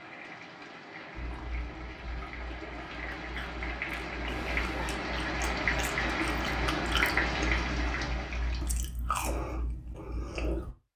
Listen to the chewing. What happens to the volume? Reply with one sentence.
The loudness of the chewing goes up.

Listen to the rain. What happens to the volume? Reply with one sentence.
The loudness of the rain goes up.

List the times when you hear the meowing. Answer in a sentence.
The meowing can be heard from 4.2 to 5.0 s.